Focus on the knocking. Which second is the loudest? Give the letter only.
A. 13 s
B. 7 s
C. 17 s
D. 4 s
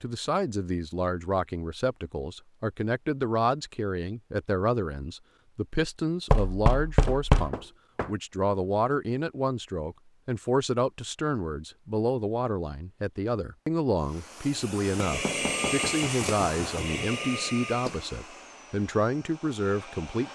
B.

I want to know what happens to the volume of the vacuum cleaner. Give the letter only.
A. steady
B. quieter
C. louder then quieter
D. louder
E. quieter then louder
B.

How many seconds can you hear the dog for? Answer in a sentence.
You can't hear the dog here.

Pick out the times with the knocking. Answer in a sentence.
You can hear the knocking from 6.3 to 8.1 s and from 15.1 to 17.1 s.